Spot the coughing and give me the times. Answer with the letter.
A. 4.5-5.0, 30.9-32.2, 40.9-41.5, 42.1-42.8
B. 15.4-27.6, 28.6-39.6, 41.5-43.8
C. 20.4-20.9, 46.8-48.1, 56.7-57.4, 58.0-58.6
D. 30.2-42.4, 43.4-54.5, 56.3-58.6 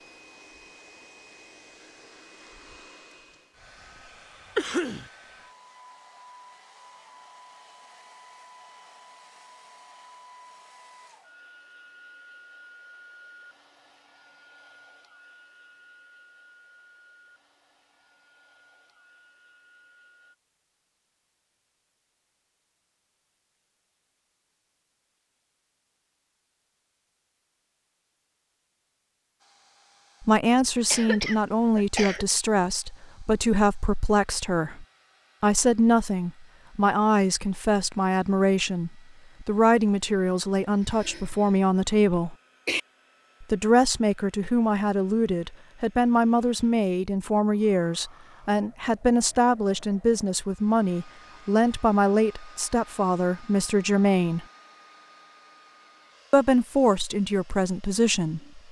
A.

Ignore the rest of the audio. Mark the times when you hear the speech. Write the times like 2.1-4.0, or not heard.
30.2-42.4, 43.4-54.5, 56.3-58.6.